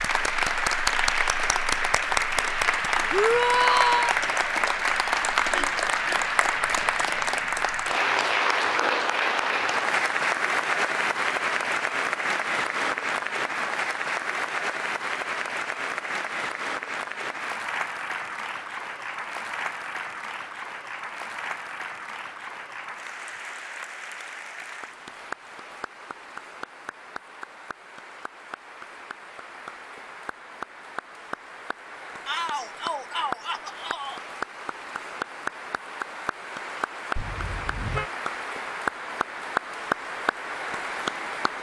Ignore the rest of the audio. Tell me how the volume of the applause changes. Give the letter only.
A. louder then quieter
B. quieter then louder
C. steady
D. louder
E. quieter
B.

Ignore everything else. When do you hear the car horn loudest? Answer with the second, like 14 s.
38 s.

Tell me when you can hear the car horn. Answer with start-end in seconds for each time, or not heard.
5.5-6.2, 37.1-38.1.